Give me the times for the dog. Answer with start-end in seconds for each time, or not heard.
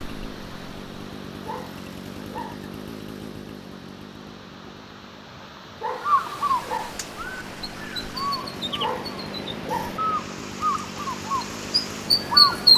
1.4-2.5, 5.8-6.9, 8.8-9.9.